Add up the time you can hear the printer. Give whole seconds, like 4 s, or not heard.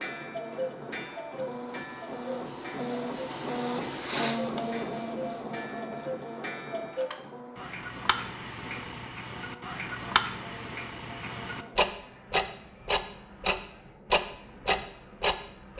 16 s.